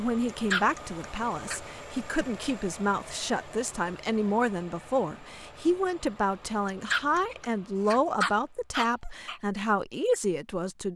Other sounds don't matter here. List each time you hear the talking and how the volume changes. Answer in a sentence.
The talking can be heard from 0.0 to 10.9 s, at a steady volume.